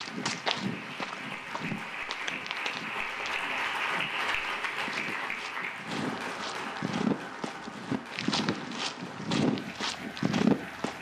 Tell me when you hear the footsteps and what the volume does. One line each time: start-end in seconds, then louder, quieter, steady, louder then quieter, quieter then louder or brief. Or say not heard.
0.0-10.9 quieter then louder.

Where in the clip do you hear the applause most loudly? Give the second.
4 s.